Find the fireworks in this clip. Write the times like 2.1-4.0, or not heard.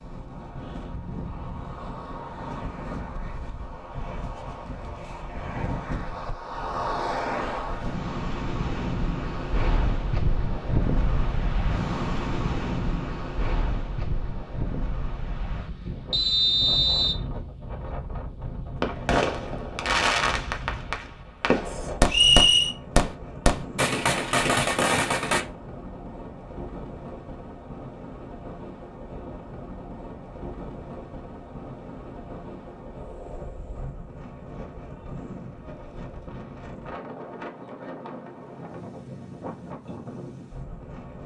18.8-25.4.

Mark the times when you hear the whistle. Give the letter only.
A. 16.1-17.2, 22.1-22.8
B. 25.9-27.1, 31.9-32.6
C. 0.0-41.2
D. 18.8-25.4
A.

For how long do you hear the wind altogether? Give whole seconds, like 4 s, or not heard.
41 s.